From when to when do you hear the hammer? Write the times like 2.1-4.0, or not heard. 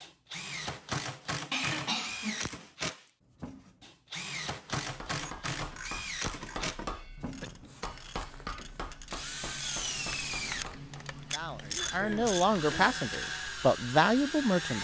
4.8-11.1.